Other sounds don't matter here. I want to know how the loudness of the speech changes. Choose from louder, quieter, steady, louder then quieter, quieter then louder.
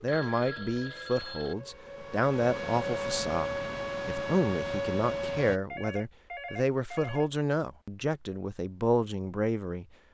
steady.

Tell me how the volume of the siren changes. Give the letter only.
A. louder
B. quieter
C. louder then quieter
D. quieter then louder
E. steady
A.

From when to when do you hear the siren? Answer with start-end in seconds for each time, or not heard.
0.0-5.6.